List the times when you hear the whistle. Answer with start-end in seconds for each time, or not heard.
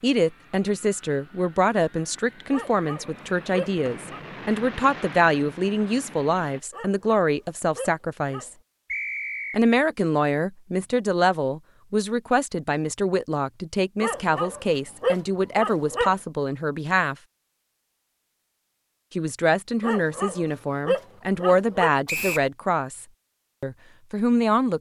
3.9-4.6, 8.9-9.6, 22.1-22.5.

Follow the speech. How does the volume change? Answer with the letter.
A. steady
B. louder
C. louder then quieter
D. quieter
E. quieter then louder
A.